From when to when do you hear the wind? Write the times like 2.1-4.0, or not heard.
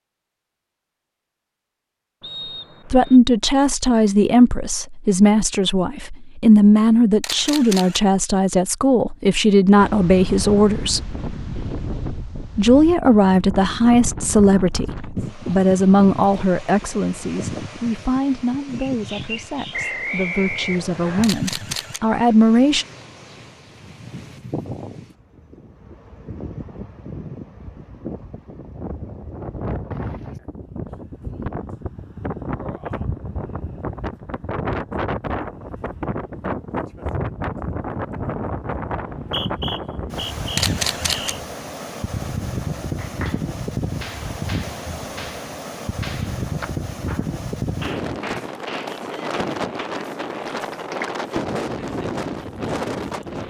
9.8-53.4.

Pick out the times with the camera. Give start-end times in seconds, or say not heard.
7.2-8.0, 21.2-22.0, 40.5-41.4.